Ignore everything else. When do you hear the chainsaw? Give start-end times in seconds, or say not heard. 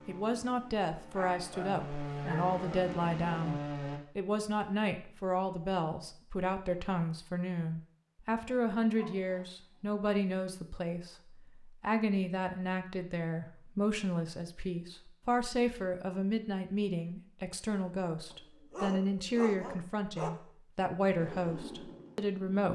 0.0-4.0, 21.1-22.7.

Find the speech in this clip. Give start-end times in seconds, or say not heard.
0.1-22.7.